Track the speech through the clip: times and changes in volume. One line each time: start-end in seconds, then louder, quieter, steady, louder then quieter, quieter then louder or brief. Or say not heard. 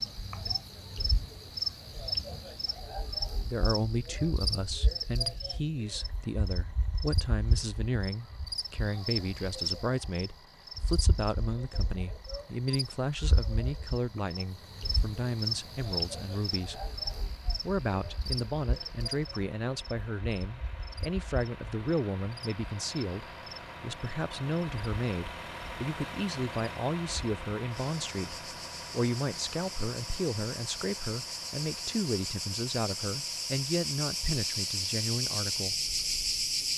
3.4-16.9 steady
17.6-35.8 steady.